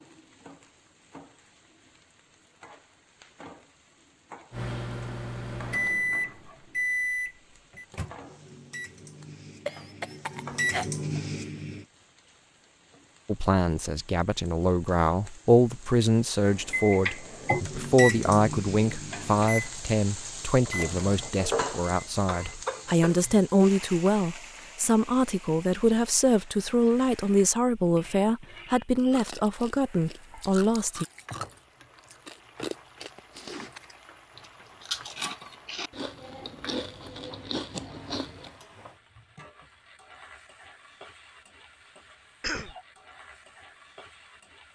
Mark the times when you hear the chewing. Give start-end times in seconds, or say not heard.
28.9-38.5.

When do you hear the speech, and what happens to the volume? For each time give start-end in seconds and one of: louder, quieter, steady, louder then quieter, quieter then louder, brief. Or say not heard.
13.2-31.1 steady.